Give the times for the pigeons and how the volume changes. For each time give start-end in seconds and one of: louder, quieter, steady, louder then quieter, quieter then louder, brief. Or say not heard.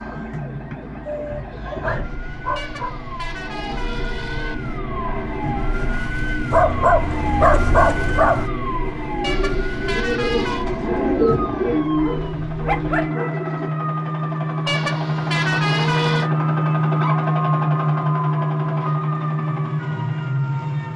7.7-13.7 louder then quieter.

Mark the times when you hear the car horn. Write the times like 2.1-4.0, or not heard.
2.5-4.5, 9.2-10.7, 14.7-16.3.